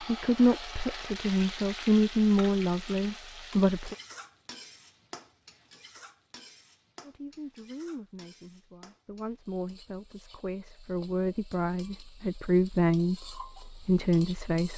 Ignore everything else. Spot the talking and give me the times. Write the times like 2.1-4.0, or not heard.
0.1-4.0, 7.0-14.7.